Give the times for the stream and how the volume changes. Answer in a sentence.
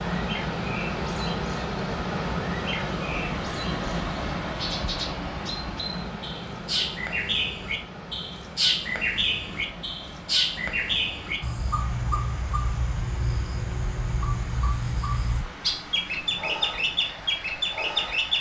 You can hear the stream from 0.0 to 18.3 s, getting quieter.